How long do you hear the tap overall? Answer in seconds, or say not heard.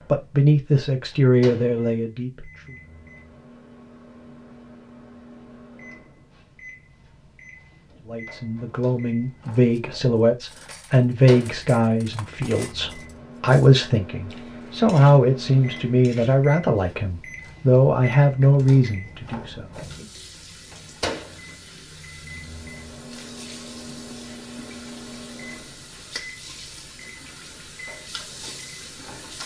10 s.